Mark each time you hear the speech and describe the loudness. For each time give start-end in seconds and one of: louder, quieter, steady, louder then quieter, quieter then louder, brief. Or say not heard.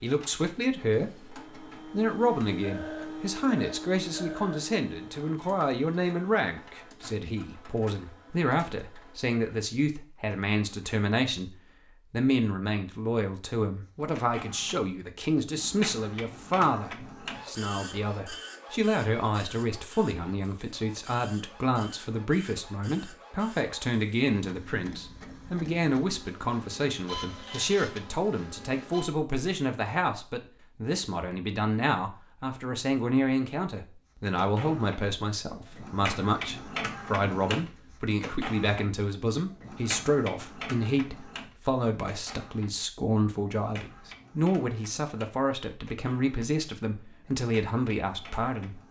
0.0-48.8 steady.